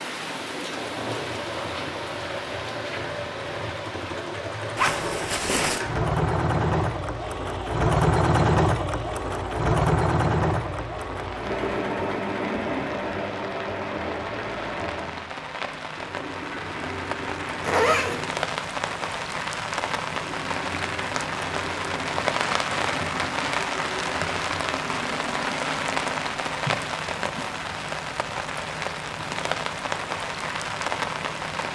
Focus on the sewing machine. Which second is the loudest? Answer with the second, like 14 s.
8 s.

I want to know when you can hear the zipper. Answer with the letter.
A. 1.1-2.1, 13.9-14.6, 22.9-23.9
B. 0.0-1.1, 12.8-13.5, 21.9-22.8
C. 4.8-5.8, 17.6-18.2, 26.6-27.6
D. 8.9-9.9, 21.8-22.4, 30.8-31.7
C.